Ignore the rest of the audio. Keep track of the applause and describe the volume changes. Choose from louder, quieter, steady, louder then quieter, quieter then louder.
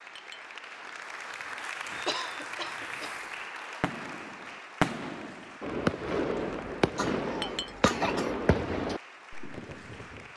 quieter.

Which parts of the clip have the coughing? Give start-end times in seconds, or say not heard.
2.0-3.1, 7.0-8.4.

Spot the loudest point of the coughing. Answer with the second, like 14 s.
8 s.